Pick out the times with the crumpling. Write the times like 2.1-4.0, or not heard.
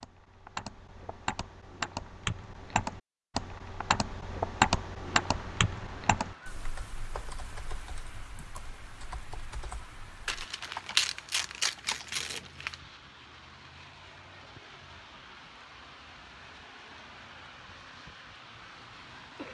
10.2-12.8.